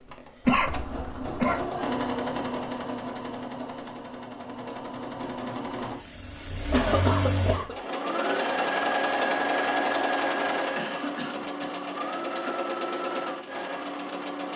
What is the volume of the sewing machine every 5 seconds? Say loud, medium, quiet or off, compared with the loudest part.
medium, loud, loud.